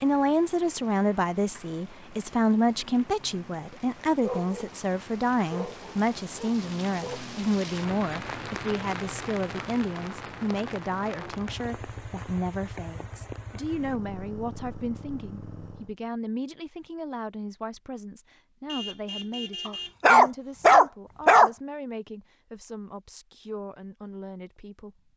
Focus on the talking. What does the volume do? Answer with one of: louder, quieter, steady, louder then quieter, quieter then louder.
quieter.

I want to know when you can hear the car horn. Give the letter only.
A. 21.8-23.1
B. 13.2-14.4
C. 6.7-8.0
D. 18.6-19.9
D.